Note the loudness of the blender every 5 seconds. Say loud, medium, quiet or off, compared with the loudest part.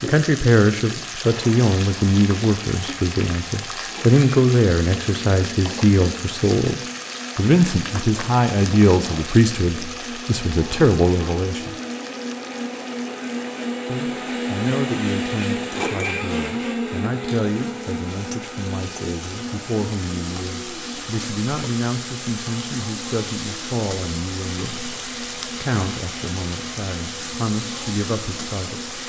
medium, medium, loud, loud, medium, medium.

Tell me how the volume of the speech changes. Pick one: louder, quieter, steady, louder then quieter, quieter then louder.
quieter.